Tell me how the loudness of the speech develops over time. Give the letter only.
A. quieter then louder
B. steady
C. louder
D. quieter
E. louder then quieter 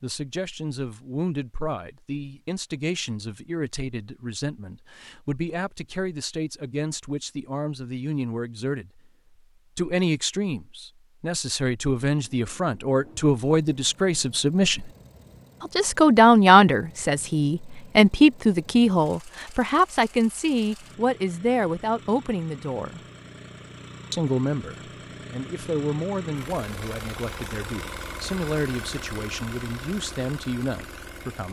E.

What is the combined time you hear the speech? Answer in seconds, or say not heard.
29 s.